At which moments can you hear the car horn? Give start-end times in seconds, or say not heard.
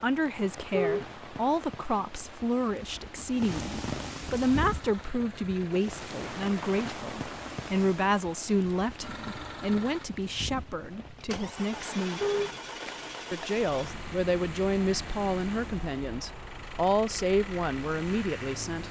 0.7-1.1, 12.2-12.6.